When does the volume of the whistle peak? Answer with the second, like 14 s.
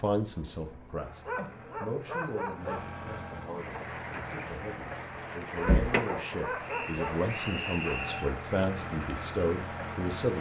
8 s.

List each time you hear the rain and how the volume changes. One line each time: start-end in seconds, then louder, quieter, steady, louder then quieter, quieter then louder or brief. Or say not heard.
3.5-10.3 louder then quieter.